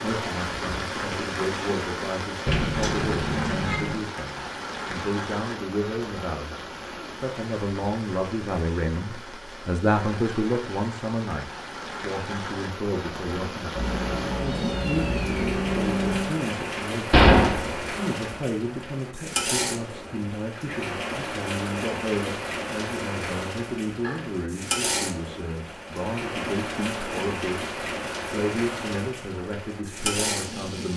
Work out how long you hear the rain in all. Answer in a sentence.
The rain can be heard for 31 seconds in total.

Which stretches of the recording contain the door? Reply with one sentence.
You can hear the door from 2.5 to 4.0 s and from 17.1 to 17.9 s.